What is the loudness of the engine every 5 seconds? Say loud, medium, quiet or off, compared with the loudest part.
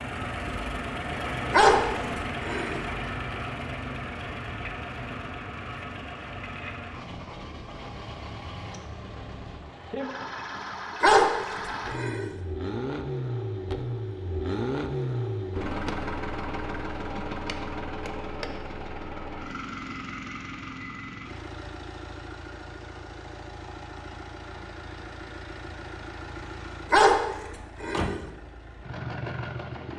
loud, medium, loud, loud, medium, medium.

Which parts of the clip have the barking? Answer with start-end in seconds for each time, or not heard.
1.5-2.9, 11.0-12.3, 26.9-28.2.